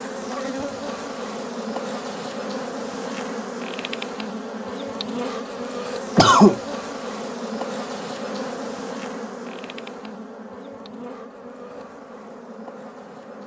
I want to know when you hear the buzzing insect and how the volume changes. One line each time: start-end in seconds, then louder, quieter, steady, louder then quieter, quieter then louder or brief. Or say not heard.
0.0-13.4 quieter.